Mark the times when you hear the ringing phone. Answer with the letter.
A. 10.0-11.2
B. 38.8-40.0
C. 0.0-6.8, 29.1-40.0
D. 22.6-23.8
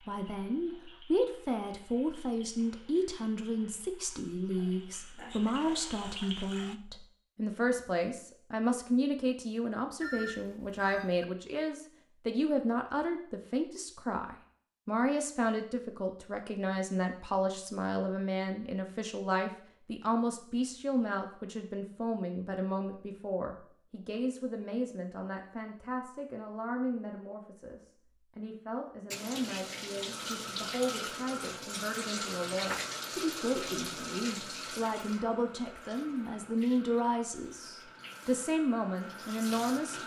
A.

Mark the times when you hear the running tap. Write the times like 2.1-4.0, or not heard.
0.0-6.8, 29.1-40.0.